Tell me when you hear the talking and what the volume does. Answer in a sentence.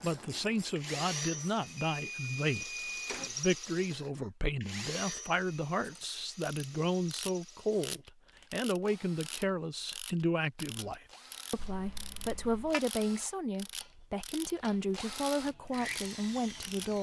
The talking can be heard from 0.0 to 16.9 s, at a steady volume.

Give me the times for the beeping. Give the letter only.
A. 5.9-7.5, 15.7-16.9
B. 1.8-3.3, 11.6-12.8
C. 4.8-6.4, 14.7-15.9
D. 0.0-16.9
B.